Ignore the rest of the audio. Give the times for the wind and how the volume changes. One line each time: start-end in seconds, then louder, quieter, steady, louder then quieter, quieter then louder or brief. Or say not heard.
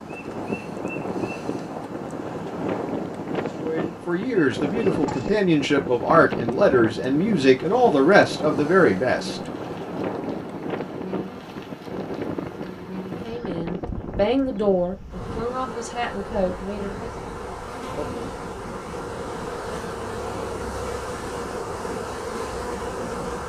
0.0-23.4 quieter.